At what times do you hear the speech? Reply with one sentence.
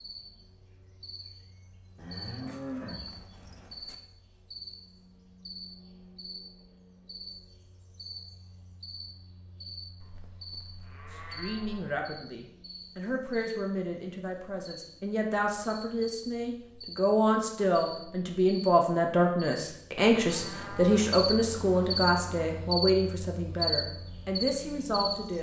The speech can be heard from 11.1 to 25.3 s.